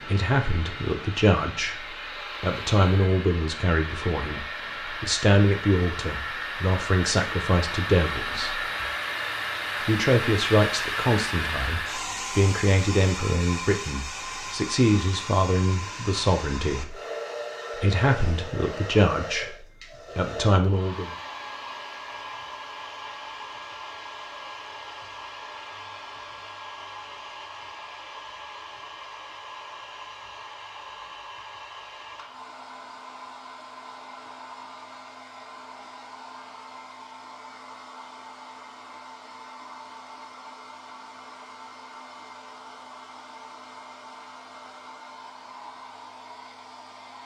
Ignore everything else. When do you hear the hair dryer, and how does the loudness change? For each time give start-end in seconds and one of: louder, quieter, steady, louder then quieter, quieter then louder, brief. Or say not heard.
0.0-47.2 quieter.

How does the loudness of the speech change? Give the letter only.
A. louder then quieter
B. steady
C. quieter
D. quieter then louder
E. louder
B.